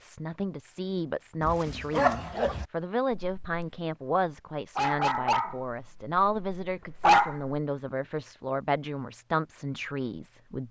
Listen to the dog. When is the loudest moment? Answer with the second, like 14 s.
7 s.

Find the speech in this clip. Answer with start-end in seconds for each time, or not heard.
0.0-10.6.